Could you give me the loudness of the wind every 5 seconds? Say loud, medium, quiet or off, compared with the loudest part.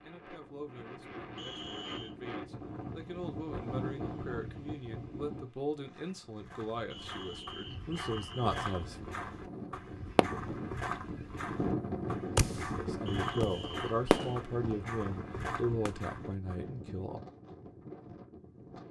loud, medium, loud, medium.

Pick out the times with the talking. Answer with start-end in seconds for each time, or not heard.
0.0-8.9, 12.6-17.2.